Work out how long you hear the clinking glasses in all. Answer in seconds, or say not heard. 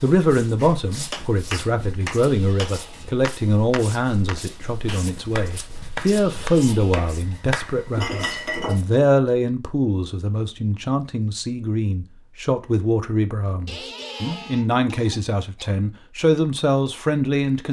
2 s.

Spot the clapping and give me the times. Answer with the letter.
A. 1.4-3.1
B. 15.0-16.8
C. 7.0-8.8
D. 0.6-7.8
D.